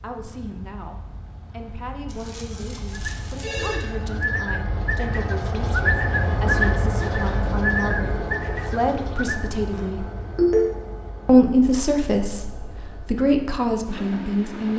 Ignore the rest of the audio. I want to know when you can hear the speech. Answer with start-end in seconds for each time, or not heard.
0.0-10.1, 11.2-14.7.